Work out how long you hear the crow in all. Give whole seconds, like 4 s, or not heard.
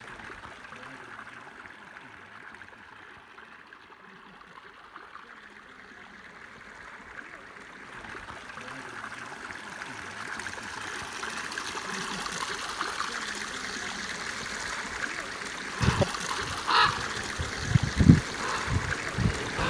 4 s.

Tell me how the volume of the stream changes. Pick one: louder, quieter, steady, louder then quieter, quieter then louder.
louder.